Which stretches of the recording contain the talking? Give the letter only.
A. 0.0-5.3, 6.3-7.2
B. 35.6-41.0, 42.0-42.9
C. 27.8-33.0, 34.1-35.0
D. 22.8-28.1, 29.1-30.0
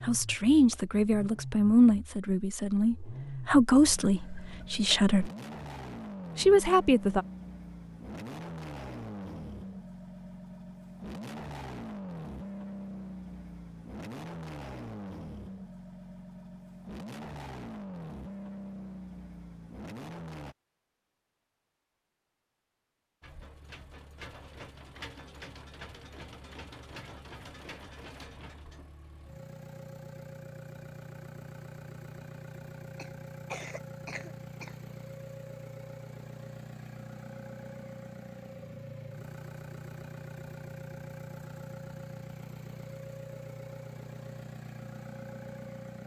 A.